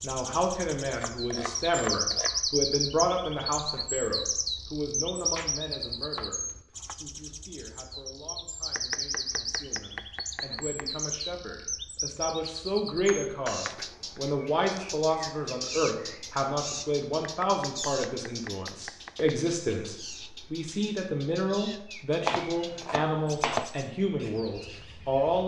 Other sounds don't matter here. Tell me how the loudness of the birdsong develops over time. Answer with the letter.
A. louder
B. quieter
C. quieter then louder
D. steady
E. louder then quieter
B.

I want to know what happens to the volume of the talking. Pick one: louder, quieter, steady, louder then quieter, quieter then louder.
quieter then louder.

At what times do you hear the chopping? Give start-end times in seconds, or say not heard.
1.0-2.5, 5.2-7.0, 8.8-10.8, 13.1-13.8, 17.2-19.4, 22.2-23.7.